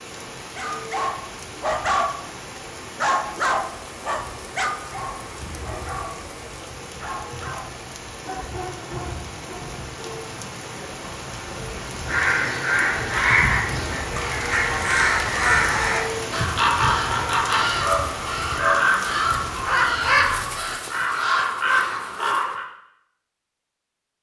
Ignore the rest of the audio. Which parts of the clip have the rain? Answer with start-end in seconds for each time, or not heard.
0.0-20.5.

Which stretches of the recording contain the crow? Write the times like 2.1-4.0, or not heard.
12.1-22.6.